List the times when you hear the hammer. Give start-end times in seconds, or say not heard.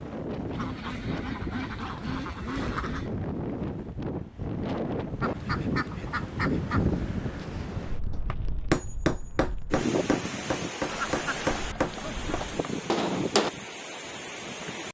8.3-13.5.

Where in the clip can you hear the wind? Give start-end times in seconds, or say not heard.
0.0-14.9.